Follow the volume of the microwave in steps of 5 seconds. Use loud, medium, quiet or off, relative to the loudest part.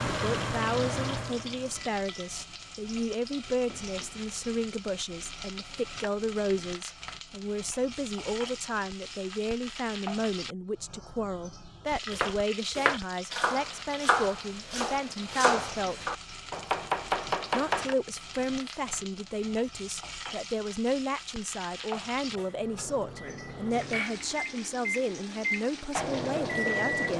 loud, off, off, off, medium, loud.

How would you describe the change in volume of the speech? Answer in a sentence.
The loudness of the speech stays about the same.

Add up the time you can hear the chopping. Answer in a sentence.
You can hear the chopping for 6 seconds altogether.